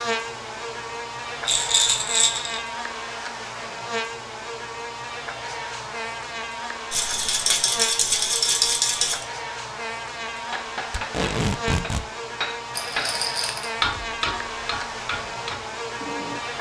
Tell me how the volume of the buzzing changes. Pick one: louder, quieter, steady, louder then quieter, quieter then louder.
steady.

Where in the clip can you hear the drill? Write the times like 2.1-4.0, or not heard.
not heard.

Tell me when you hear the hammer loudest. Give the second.
14 s.